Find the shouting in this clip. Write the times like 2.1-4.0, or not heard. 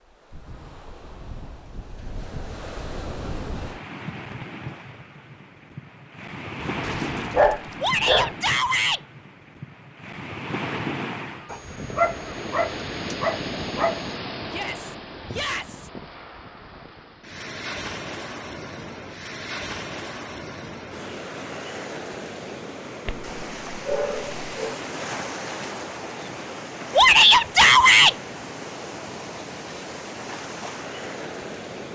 7.8-9.0, 14.4-15.9, 26.9-28.1.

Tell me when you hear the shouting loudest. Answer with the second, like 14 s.
27 s.